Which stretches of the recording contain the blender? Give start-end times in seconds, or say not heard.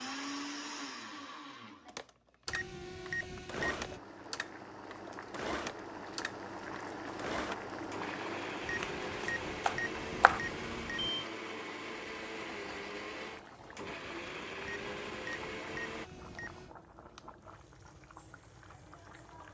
0.0-16.1.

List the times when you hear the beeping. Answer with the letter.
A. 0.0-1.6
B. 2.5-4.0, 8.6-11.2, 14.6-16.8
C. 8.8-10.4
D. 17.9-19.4
B.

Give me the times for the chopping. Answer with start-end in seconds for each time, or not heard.
8.8-10.4.